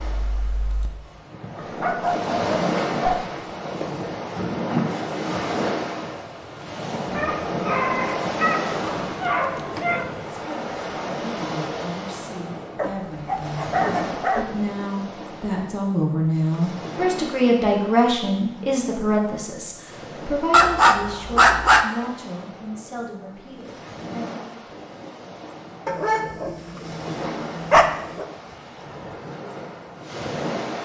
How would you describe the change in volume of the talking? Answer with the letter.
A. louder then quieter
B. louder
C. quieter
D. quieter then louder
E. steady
A.